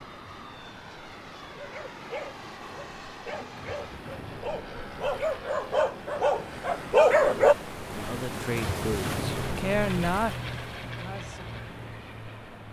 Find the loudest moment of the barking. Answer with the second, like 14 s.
7 s.